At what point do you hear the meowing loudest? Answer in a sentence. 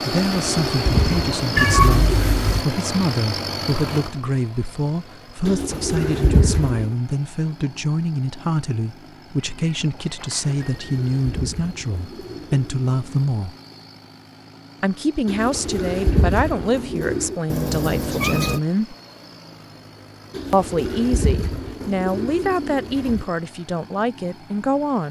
The loudest moment of the meowing is at 2 seconds.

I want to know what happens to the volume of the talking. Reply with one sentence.
The loudness of the talking stays about the same.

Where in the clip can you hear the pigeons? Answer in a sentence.
The pigeons can be heard from 0.1 to 2.6 s, from 5.5 to 7.0 s, from 10.6 to 13.3 s, from 15.2 to 17.4 s and from 20.3 to 23.2 s.